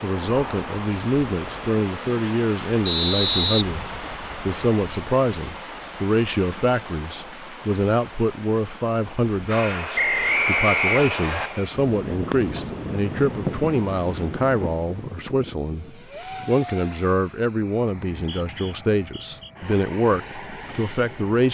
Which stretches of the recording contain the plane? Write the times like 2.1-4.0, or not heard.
0.0-1.8, 9.4-21.4.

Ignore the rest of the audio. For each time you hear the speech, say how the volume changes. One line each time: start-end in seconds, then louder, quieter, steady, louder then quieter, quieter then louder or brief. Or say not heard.
0.0-21.4 steady.